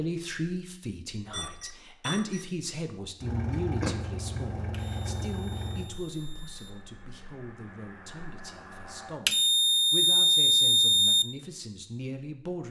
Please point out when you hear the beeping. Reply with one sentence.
You can hear the beeping from 1.3 to 2.5 s, from 4.7 to 6.7 s and from 9.2 to 11.2 s.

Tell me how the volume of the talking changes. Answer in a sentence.
The loudness of the talking goes down, then up.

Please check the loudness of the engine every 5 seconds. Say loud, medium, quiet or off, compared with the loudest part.
loud, medium, off.